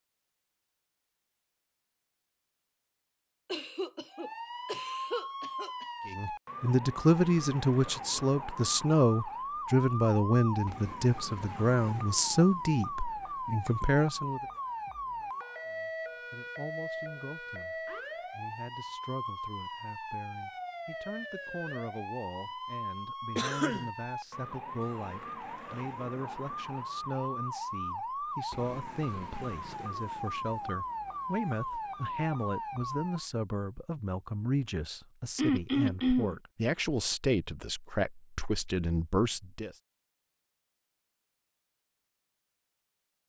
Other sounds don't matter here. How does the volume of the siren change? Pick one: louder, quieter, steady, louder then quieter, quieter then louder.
steady.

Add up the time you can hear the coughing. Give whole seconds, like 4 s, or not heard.
4 s.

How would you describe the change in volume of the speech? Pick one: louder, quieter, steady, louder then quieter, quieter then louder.
quieter then louder.